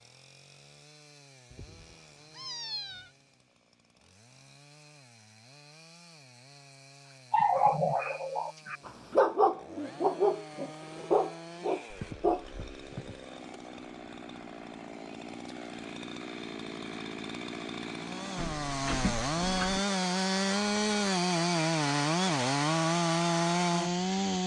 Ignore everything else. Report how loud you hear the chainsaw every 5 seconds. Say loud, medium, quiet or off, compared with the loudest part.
quiet, quiet, quiet, medium, loud.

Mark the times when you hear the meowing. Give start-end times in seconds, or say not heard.
1.5-3.1, 11.9-13.2, 18.4-19.8.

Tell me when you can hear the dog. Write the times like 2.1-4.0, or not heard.
7.3-12.4.